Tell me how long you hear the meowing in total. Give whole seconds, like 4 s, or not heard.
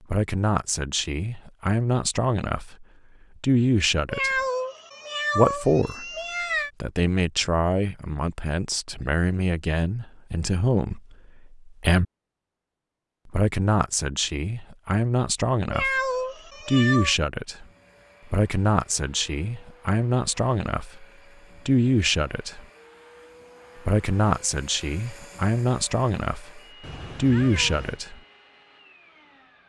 5 s.